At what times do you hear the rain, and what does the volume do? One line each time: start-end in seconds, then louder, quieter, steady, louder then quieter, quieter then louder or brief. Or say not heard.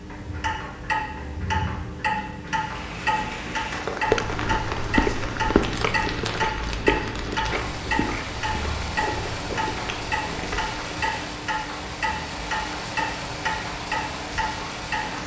2.5-15.2 steady.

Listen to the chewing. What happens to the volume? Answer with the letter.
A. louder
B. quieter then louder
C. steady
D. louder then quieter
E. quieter
E.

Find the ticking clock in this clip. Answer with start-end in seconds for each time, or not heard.
0.0-15.2.